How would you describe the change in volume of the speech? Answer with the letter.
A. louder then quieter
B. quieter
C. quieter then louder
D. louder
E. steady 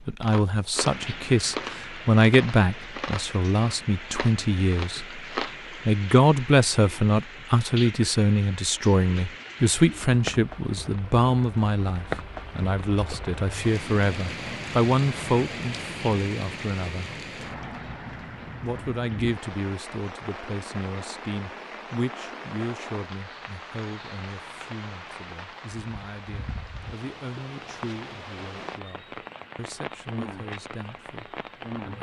B.